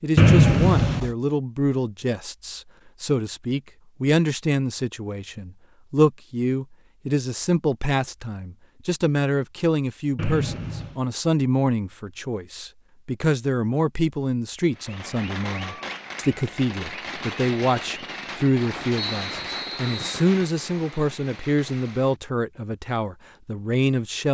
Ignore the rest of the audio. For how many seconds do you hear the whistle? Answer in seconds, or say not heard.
3 s.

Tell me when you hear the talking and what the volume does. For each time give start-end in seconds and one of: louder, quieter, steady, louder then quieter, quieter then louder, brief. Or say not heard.
0.0-24.2 steady.